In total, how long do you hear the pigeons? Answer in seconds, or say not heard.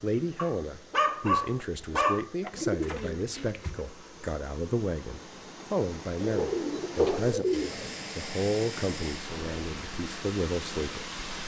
3 s.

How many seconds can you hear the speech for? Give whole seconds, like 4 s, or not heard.
11 s.